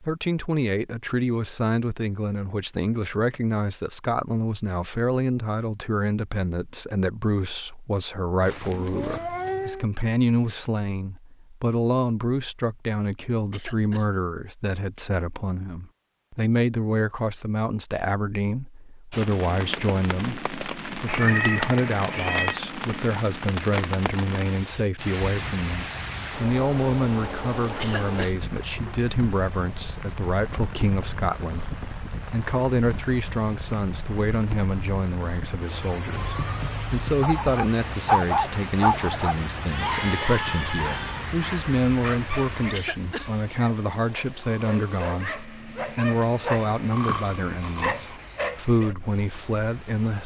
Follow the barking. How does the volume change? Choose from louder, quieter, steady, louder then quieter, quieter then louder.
quieter then louder.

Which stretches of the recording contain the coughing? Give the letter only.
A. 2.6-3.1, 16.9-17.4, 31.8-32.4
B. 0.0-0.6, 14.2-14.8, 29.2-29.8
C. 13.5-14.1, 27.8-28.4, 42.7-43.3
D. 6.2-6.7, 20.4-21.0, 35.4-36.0
C.